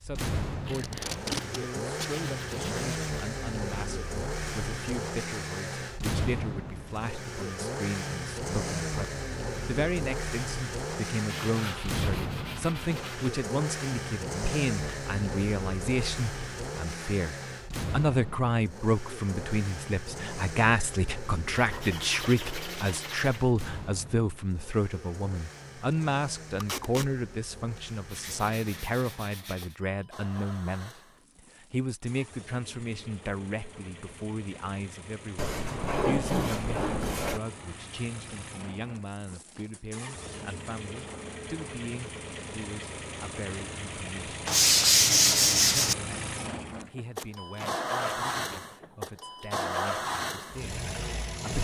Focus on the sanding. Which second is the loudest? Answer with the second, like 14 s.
45 s.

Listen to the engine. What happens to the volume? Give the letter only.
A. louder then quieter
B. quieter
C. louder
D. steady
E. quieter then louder
E.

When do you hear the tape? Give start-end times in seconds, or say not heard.
0.7-2.1, 26.6-27.1, 47.1-48.6.